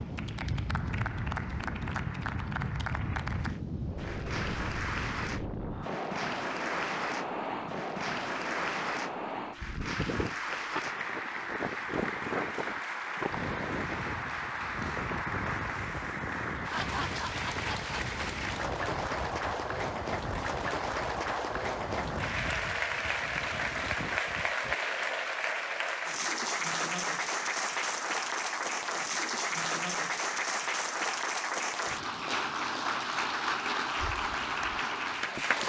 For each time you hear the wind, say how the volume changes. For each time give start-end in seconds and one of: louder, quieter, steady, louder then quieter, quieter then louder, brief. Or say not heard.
0.0-24.8 quieter.